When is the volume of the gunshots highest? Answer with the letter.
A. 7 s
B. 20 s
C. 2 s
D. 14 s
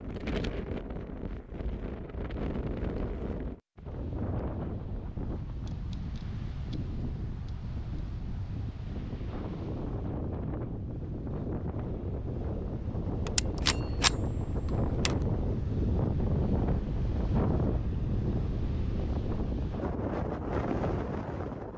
D.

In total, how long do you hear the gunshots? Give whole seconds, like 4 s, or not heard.
2 s.